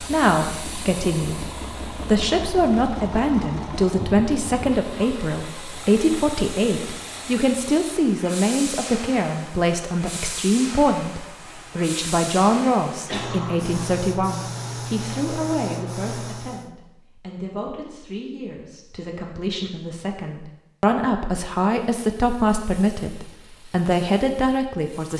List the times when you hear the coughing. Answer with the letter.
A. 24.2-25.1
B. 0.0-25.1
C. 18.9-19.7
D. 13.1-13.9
D.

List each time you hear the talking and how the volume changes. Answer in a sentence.
You can hear the talking from 0.0 to 25.1 s, getting quieter then louder.